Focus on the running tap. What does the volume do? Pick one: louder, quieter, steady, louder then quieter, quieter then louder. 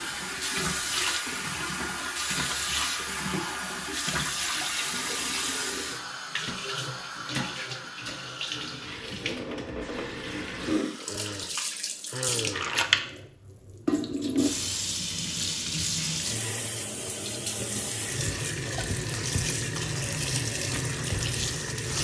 steady.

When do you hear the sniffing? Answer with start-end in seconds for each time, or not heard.
10.7-12.8.